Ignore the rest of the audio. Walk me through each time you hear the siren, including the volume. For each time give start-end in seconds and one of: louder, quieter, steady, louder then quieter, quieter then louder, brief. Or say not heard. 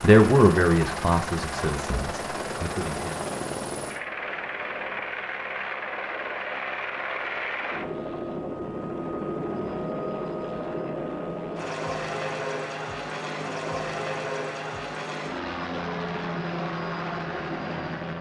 not heard.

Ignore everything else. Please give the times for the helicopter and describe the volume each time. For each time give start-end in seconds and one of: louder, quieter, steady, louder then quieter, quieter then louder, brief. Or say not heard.
0.0-18.1 steady.